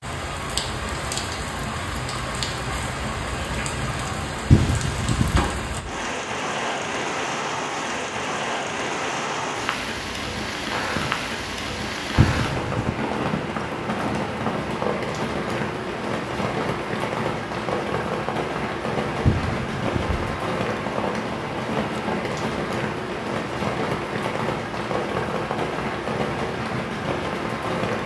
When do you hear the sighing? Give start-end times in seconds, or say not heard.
4.5-5.5, 12.2-12.9, 19.2-20.2.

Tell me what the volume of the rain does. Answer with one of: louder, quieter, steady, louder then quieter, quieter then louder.
steady.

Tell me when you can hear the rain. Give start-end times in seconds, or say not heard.
0.0-28.0.